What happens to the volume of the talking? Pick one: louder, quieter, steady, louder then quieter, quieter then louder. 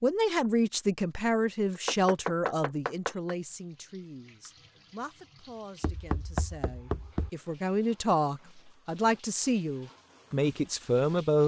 quieter then louder.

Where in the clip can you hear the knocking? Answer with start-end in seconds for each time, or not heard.
1.8-3.4, 5.8-7.3.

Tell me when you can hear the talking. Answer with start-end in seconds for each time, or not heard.
0.0-11.4.